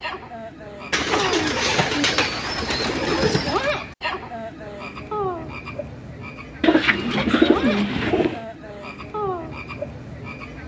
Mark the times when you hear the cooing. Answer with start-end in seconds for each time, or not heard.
0.9-3.7, 6.6-8.4.